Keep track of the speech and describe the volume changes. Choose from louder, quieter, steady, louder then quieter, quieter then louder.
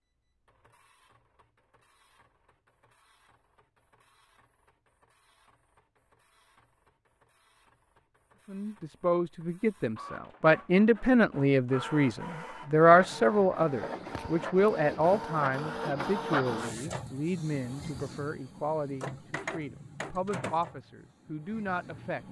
quieter.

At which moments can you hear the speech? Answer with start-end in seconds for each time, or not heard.
8.4-22.2.